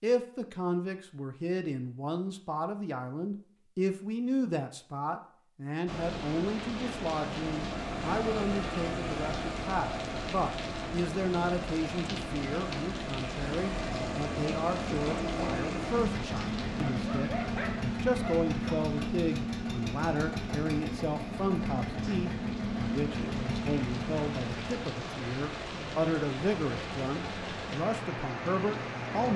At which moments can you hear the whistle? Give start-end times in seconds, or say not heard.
not heard.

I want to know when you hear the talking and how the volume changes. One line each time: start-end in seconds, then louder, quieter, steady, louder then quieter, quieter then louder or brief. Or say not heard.
0.0-29.3 steady.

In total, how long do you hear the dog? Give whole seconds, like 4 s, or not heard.
2 s.